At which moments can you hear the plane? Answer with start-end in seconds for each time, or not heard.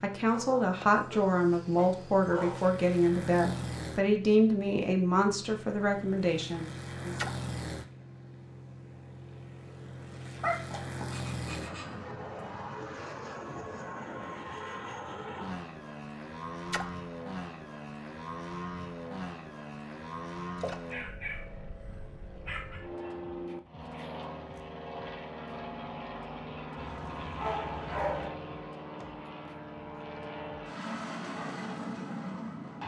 0.0-32.8.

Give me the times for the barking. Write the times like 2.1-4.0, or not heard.
0.3-2.7, 10.4-11.8, 20.8-22.9, 26.8-28.3.